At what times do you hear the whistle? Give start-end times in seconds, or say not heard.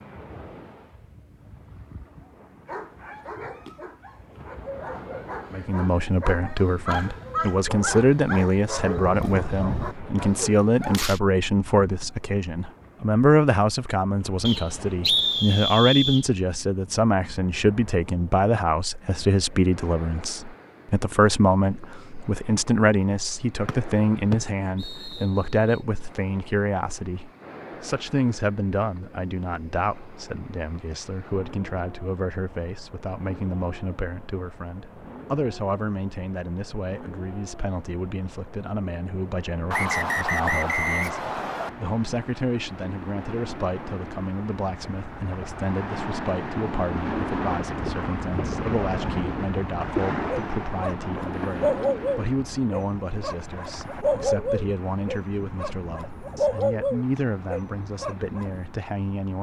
14.4-16.2, 23.6-25.8, 39.7-41.7.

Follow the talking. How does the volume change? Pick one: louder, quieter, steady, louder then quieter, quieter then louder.
quieter.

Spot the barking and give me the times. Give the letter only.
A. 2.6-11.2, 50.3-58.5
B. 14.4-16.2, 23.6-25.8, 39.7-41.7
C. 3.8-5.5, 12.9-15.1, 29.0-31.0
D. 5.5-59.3
A.